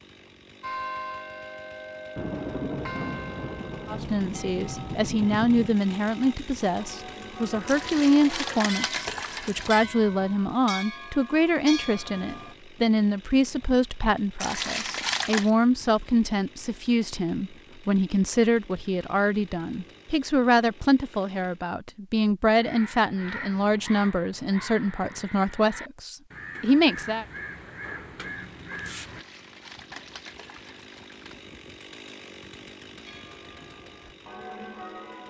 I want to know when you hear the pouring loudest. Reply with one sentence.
The volume of the pouring peaks at 15 seconds.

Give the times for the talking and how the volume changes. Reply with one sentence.
The talking can be heard from 3.9 to 27.2 s, at a steady volume.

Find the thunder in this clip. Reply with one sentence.
The thunder can be heard from 2.1 to 5.8 s.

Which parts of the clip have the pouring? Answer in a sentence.
The pouring can be heard from 7.7 to 9.8 s, from 14.4 to 15.5 s and from 28.9 to 31.4 s.